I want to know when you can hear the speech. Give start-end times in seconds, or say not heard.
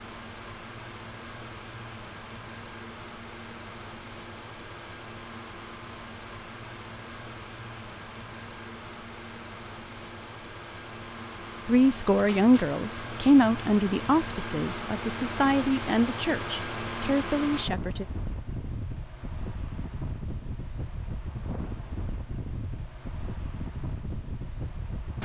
11.7-18.1.